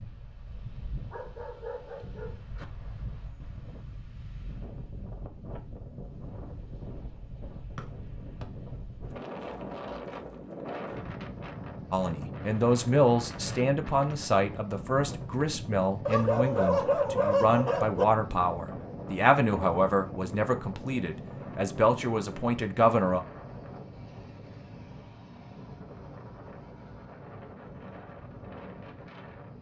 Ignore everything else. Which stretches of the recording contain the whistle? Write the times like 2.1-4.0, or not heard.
7.8-8.4.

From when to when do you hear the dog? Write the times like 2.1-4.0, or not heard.
0.9-2.6, 16.1-18.1.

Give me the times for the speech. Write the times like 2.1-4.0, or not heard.
11.9-23.2.